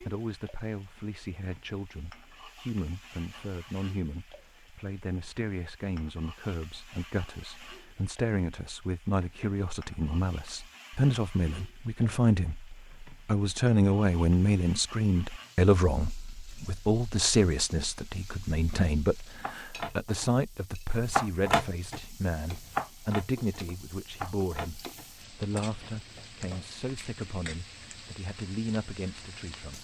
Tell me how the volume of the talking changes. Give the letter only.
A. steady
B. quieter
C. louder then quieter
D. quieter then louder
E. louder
C.